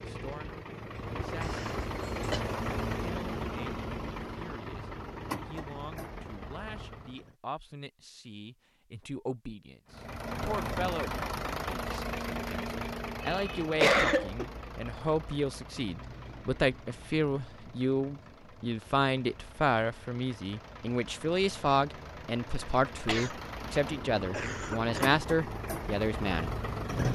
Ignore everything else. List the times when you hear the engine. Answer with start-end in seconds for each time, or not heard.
0.0-7.3, 9.9-27.1.